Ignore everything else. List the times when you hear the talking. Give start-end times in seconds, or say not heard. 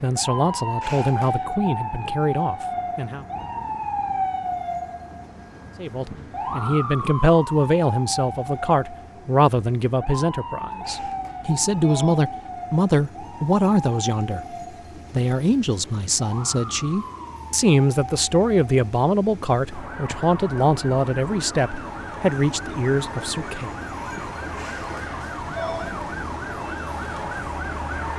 0.0-3.2, 5.8-14.4, 15.1-23.7.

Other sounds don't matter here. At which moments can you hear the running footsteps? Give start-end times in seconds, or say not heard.
not heard.